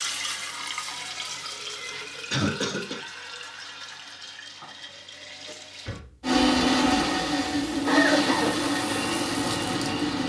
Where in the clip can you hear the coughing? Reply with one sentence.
You can hear the coughing from 2.3 to 3.0 s and from 7.8 to 8.6 s.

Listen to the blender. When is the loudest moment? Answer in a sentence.
The loudest moment of the blender is at 7 seconds.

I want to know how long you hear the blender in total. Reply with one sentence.
You can hear the blender for 4 seconds altogether.